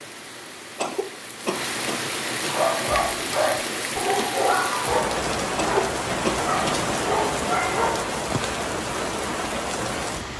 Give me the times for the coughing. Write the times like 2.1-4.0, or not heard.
0.8-2.5, 5.5-6.8.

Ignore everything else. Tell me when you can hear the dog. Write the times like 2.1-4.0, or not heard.
2.5-8.2.